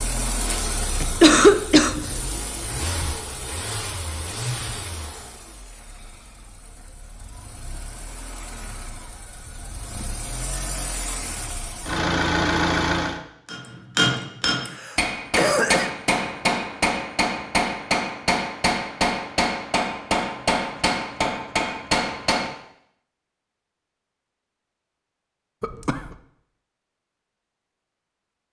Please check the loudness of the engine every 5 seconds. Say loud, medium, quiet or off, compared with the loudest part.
medium, quiet, loud, off, off, off.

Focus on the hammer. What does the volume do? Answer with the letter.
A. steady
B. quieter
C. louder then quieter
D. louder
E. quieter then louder
A.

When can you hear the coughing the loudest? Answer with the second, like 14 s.
1 s.